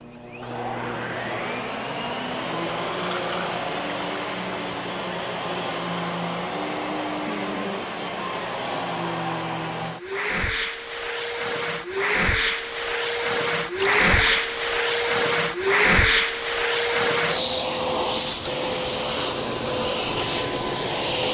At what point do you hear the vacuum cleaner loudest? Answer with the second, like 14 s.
16 s.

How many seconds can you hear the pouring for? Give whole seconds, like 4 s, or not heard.
2 s.